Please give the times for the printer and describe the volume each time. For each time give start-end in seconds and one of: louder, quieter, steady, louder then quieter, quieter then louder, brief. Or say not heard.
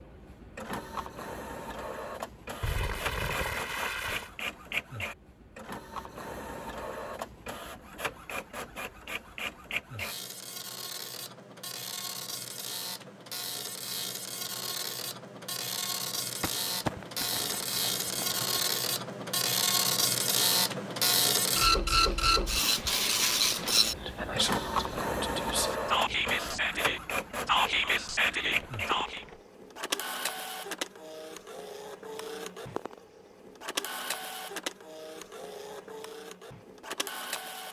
0.0-37.6 louder then quieter.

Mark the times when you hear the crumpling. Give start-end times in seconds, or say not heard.
2.6-4.3, 16.4-18.6, 28.6-29.4.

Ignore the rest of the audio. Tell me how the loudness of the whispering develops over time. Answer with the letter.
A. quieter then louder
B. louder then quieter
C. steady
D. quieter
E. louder
E.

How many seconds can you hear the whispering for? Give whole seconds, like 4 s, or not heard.
7 s.